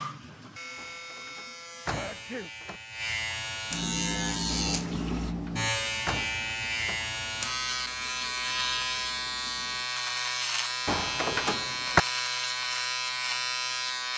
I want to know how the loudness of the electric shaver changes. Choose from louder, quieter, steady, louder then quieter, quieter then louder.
louder.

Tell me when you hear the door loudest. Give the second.
12 s.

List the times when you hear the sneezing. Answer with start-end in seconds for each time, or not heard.
1.9-2.5.